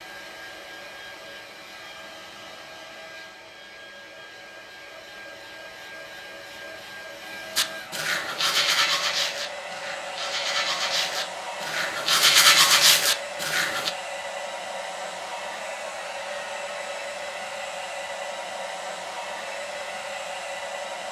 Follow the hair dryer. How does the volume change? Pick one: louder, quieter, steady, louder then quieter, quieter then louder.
louder.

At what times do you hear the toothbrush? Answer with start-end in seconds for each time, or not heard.
7.5-13.9.